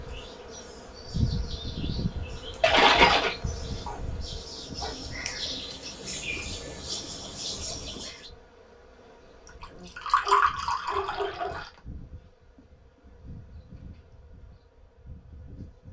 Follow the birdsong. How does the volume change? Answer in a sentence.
The volume of the birdsong goes up.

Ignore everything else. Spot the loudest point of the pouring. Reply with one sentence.
The volume of the pouring peaks at 3 seconds.